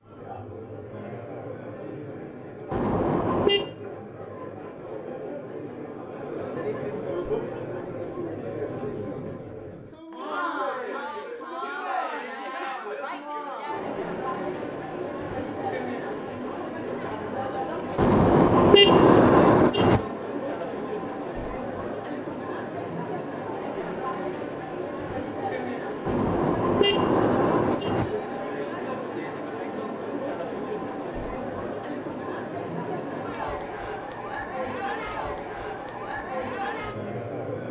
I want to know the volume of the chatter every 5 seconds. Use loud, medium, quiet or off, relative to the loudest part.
medium, loud, loud, loud, loud, loud, loud, loud.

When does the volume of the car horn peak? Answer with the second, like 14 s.
19 s.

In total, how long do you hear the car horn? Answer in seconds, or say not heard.
5 s.